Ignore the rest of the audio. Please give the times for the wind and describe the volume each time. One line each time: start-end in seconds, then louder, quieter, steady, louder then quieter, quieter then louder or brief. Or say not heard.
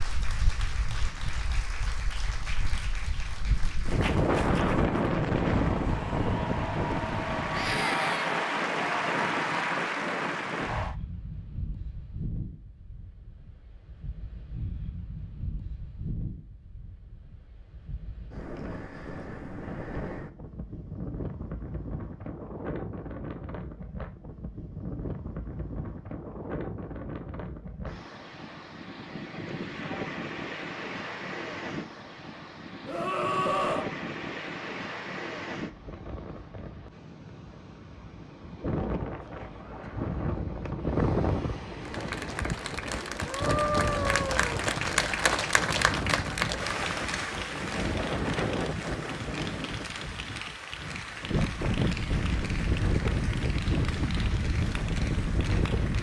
0.0-55.9 quieter then louder.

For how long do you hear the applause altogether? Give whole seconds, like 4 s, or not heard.
25 s.